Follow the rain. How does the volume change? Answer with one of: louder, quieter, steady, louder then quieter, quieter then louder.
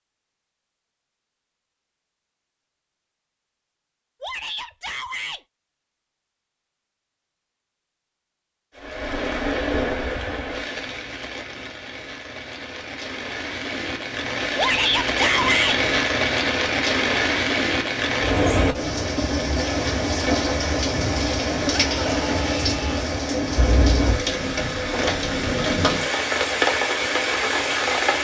louder.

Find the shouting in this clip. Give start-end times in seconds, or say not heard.
4.2-5.4, 14.6-15.8, 21.7-23.1.